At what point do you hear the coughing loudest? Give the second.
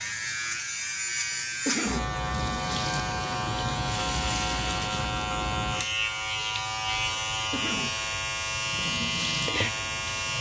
2 s.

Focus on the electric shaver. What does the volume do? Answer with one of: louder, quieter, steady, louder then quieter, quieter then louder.
steady.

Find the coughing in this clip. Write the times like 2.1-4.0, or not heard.
1.6-2.1, 7.5-8.0.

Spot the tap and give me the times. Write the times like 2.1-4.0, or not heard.
0.0-5.2, 7.3-10.3.